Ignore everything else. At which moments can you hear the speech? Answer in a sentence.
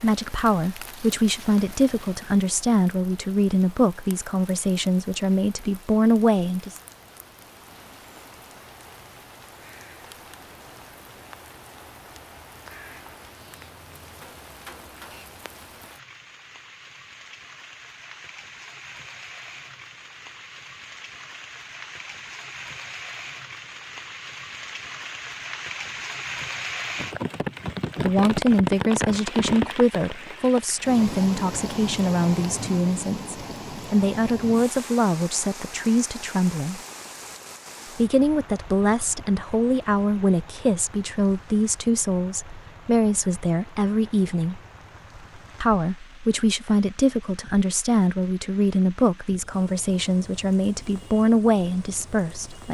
You can hear the speech from 0.0 to 6.8 s, from 28.0 to 36.8 s, from 38.0 to 44.6 s and from 45.6 to 52.6 s.